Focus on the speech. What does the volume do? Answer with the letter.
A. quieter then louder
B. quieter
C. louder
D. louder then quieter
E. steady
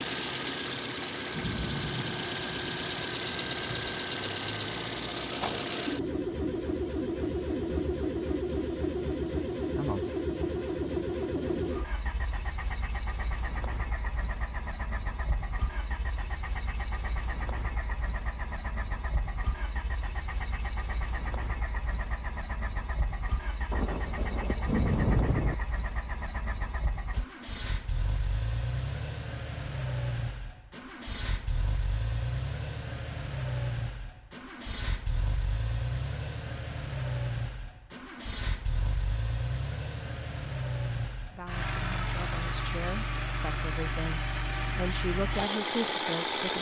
C.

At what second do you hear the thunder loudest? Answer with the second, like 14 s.
25 s.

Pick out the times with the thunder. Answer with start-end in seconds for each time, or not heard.
1.3-4.0, 23.7-25.6.